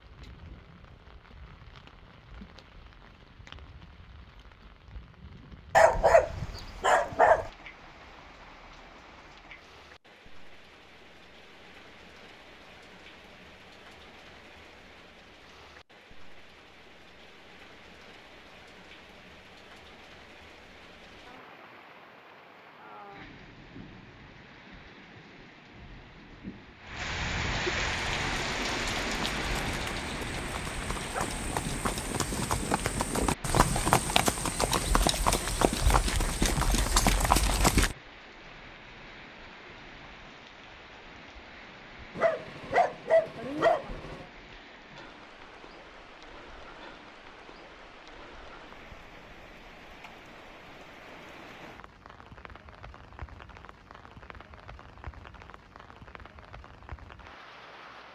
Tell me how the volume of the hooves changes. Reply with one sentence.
The volume of the hooves goes up.